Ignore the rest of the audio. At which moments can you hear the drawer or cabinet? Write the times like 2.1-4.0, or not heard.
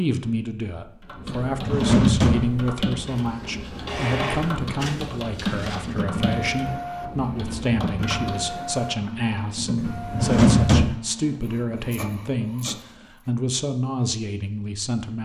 1.2-2.7, 9.8-10.9.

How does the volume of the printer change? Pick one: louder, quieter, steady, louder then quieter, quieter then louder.
quieter.